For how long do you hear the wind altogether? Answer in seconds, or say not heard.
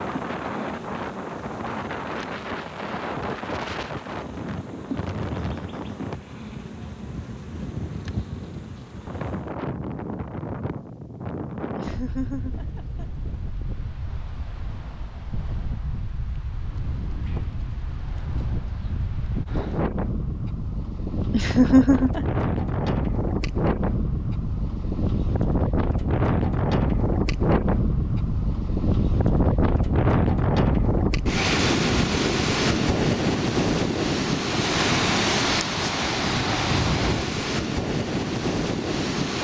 39 s.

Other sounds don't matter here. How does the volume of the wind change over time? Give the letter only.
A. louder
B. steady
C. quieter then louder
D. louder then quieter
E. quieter
A.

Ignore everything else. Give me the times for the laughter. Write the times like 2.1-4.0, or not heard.
11.8-13.1, 21.3-22.2.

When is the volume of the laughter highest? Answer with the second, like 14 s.
22 s.